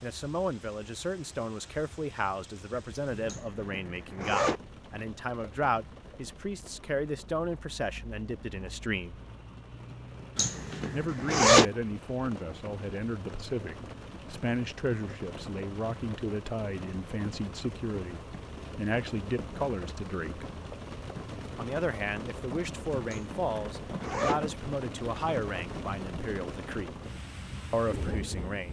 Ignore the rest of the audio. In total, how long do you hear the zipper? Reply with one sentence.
You can hear the zipper for 4 seconds altogether.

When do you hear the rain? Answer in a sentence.
The rain can be heard from 0.0 to 28.6 s.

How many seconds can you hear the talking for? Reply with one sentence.
You can hear the talking for 25 seconds altogether.